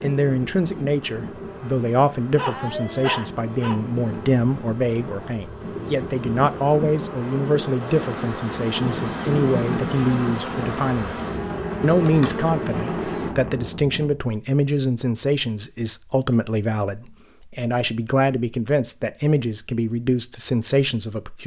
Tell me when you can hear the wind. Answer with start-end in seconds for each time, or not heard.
0.0-14.2.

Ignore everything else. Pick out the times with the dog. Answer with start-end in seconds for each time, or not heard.
2.4-3.8.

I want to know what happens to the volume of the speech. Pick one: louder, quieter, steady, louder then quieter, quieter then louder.
steady.